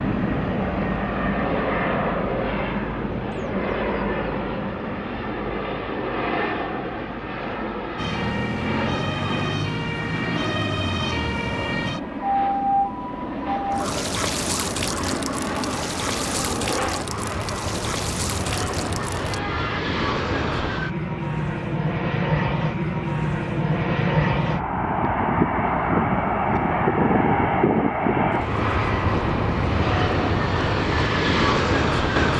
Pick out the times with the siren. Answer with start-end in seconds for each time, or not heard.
8.0-19.8.